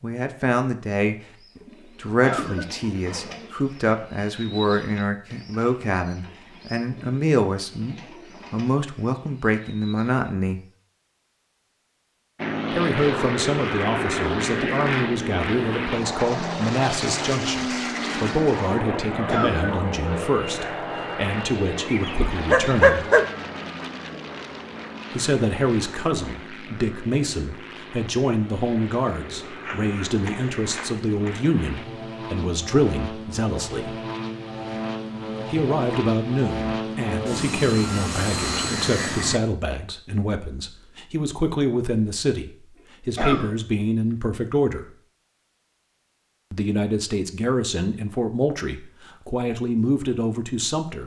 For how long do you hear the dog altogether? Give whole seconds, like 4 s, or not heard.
3 s.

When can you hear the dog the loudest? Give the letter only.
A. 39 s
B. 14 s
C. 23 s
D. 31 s
C.